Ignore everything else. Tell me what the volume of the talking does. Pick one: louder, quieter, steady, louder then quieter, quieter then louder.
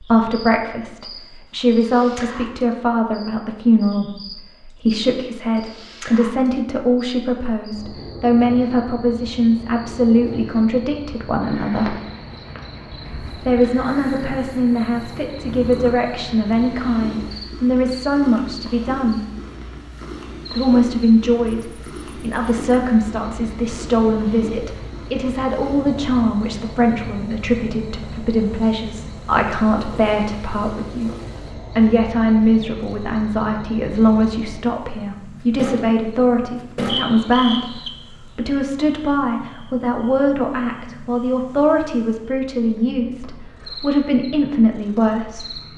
steady.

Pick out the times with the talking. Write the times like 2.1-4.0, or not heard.
0.0-11.9, 13.4-19.2, 20.5-45.5.